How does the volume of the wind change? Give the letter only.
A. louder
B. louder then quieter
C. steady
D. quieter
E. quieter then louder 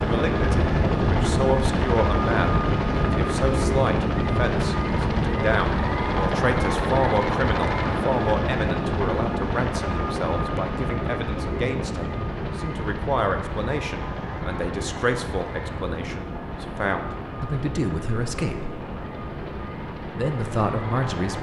D.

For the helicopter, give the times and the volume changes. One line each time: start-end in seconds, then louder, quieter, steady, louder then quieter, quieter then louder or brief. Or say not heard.
0.0-21.3 quieter.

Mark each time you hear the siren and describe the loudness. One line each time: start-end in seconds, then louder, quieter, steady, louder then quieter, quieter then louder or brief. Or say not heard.
not heard.